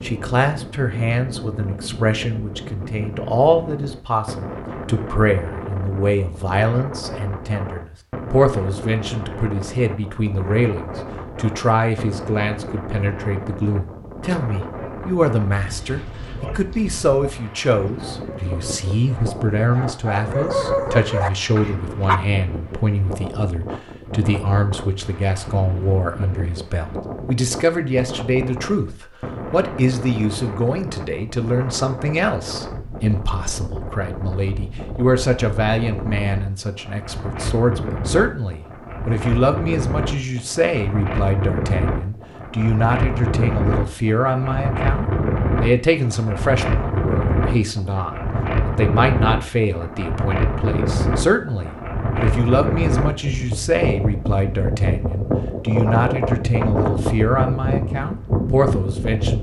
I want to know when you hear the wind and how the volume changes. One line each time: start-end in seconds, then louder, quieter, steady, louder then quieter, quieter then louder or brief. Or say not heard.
0.0-59.3 louder.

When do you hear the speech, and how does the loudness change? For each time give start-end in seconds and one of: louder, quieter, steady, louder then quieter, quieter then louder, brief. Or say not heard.
0.0-59.3 steady.